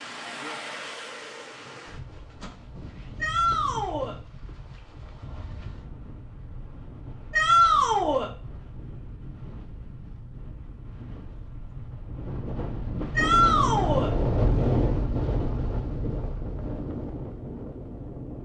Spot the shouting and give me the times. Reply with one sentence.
You can hear the shouting from 3.2 to 4.2 s, from 7.3 to 8.3 s and from 13.2 to 14.1 s.